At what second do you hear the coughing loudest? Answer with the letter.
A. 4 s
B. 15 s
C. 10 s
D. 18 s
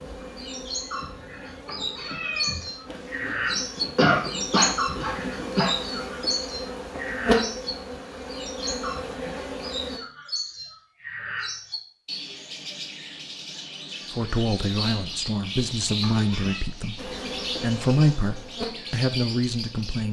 A.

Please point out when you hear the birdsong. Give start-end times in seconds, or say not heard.
0.0-20.0.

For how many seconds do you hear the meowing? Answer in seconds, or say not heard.
2 s.